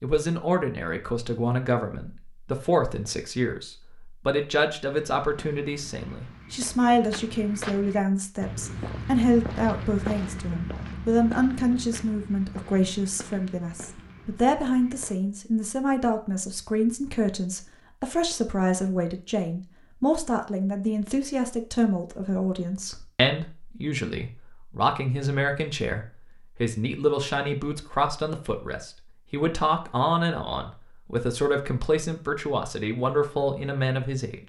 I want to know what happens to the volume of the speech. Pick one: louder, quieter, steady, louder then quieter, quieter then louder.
steady.